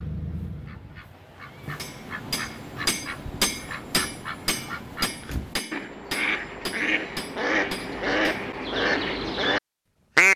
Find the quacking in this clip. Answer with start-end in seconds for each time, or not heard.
0.0-10.3.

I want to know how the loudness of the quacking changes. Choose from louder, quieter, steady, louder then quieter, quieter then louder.
louder.